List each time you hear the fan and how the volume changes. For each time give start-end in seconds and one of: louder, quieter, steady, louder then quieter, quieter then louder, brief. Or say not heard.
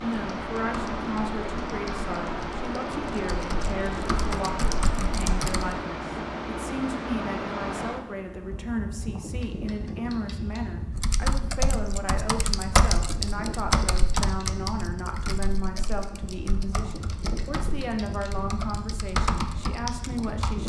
0.0-20.6 quieter.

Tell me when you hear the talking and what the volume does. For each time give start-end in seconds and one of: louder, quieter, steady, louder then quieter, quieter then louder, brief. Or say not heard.
0.0-20.6 steady.